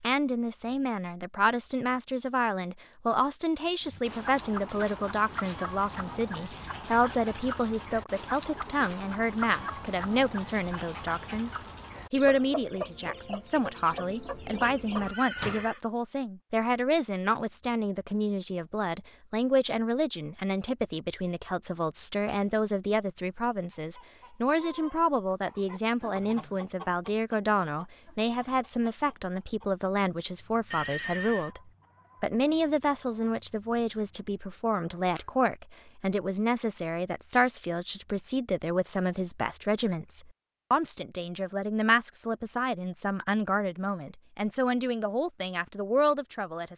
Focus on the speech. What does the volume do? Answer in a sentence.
The loudness of the speech stays about the same.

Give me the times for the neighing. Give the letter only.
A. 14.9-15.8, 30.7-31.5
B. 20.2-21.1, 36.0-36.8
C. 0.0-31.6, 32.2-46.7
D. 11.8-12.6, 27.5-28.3
A.